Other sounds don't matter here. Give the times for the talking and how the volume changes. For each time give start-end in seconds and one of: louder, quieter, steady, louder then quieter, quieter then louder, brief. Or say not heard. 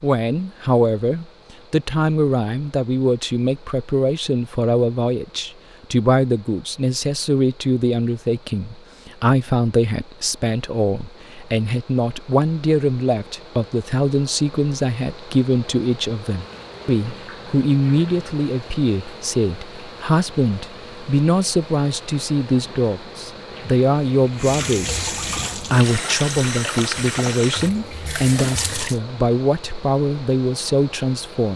0.0-31.5 steady.